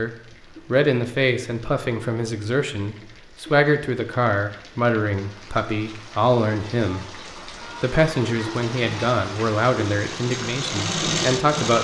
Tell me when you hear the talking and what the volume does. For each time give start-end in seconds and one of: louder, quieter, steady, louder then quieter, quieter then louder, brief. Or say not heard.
0.0-11.7 steady.